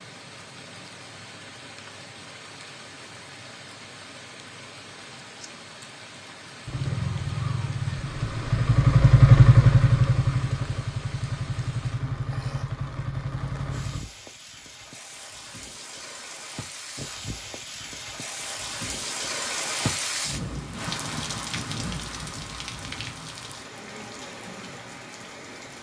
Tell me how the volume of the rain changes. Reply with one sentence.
The loudness of the rain goes up.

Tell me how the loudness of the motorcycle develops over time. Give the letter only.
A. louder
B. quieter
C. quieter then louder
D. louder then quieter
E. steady
D.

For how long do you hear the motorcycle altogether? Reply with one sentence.
You can hear the motorcycle for 7 seconds altogether.